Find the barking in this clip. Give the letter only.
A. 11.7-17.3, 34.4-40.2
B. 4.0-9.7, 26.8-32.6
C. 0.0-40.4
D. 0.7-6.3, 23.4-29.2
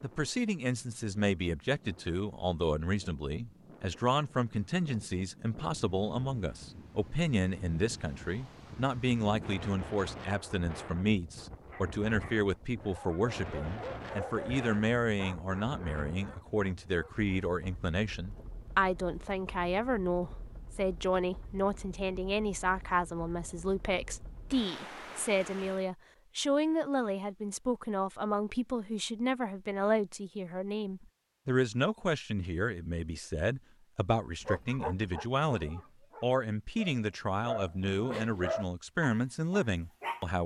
A.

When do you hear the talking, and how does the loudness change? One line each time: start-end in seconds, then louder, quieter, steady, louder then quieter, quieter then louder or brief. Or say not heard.
0.0-40.4 steady.